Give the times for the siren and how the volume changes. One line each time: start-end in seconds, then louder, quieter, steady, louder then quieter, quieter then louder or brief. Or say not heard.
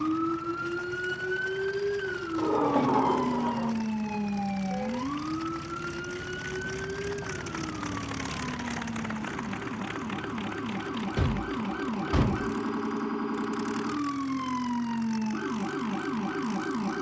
0.0-16.9 quieter then louder.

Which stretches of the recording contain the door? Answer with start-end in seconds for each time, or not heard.
2.4-3.9, 10.8-12.6.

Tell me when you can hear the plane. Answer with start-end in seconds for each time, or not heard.
0.0-16.9.